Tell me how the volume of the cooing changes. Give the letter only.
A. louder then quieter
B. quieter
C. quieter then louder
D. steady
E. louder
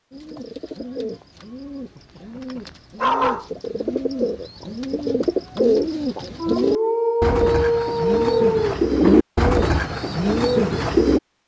E.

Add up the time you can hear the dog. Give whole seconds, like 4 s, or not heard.
4 s.